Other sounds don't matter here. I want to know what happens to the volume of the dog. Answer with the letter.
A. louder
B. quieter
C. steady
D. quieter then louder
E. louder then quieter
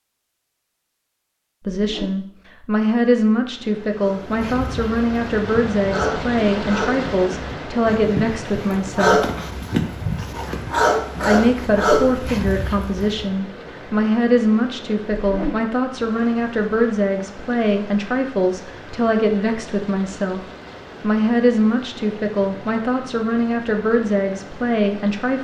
A.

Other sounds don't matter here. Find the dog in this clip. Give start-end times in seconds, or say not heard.
4.0-13.2.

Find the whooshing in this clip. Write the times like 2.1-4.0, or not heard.
1.7-2.2, 15.2-15.7.